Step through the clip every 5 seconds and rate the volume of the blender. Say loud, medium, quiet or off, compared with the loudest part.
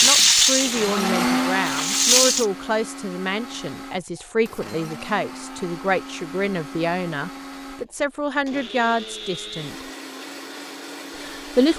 loud, medium, medium.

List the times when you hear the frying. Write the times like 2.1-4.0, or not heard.
0.0-2.5.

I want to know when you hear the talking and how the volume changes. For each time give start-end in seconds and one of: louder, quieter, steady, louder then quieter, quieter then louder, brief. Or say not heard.
0.0-9.8 steady
11.2-11.7 brief.